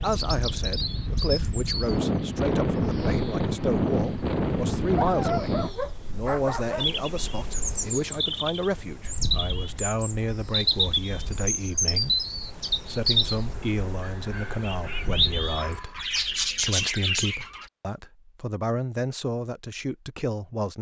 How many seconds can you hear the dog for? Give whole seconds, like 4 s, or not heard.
4 s.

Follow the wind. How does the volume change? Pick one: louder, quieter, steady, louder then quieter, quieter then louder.
quieter.